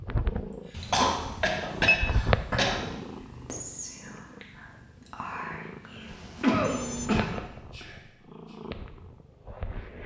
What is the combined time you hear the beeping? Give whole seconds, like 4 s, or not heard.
2 s.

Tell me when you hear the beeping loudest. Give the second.
2 s.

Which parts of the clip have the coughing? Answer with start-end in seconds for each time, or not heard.
0.5-2.8, 5.8-7.8.